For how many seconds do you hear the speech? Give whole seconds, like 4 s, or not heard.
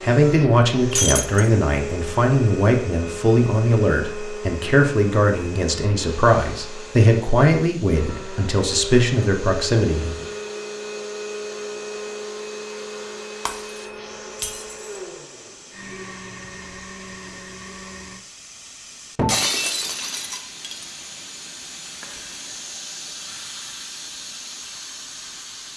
10 s.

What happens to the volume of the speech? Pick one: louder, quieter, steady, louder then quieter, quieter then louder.
steady.